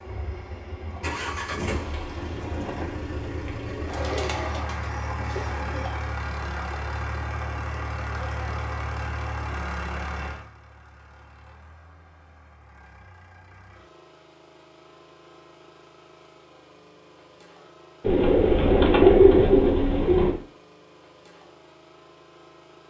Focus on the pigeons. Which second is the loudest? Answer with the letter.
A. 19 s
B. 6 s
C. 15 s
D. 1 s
A.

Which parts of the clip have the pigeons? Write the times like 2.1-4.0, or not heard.
3.9-5.9, 18.0-20.4.